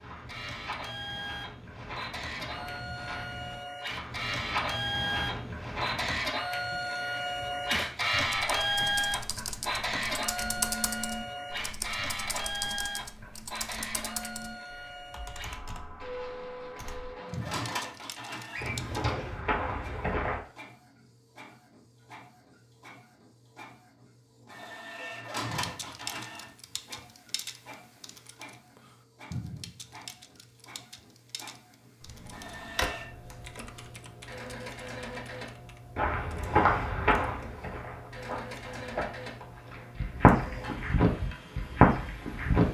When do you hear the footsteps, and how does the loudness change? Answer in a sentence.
You can hear the footsteps from 0.0 to 6.2 s, getting louder; briefly from 18.8 to 20.4 s; and from 36.0 to 42.6 s, getting quieter then louder.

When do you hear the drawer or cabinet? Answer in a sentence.
You can hear the drawer or cabinet from 18.5 to 19.4 s and from 32.0 to 33.1 s.